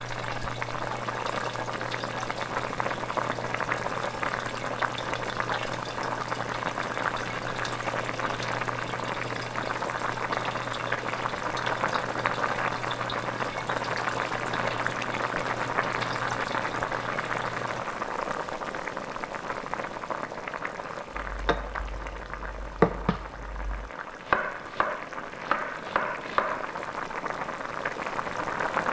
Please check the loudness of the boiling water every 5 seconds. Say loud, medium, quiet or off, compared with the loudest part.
loud, loud, loud, loud, medium, loud.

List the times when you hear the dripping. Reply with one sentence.
The dripping can be heard from 0.0 to 17.9 s.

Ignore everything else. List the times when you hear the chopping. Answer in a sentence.
The chopping can be heard from 21.2 to 26.8 s.